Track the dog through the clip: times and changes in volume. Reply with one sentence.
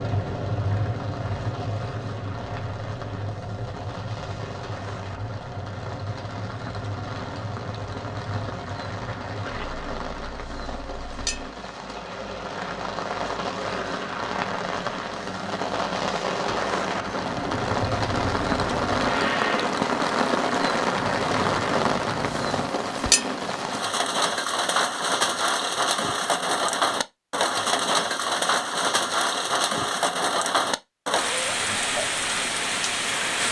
You can't hear the dog here.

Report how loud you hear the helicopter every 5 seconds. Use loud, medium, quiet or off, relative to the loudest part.
loud, medium, medium, loud, loud, off, off.